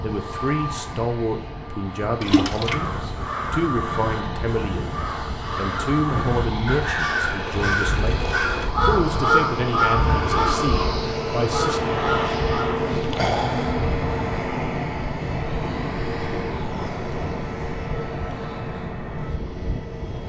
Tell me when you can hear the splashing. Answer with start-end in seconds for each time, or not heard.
2.2-2.8.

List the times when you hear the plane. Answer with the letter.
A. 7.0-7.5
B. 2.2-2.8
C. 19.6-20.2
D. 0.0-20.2
D.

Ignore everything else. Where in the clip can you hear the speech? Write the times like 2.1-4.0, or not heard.
0.0-12.0.